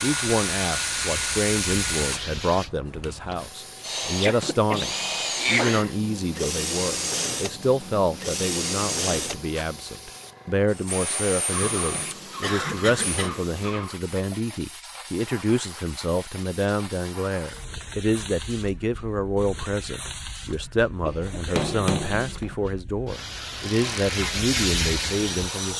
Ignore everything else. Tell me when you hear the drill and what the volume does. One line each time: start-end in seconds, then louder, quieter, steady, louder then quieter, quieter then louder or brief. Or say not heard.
0.0-13.3 quieter
23.6-25.7 brief.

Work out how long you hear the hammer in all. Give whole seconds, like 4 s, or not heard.
3 s.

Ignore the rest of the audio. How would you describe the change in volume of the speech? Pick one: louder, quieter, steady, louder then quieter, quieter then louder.
steady.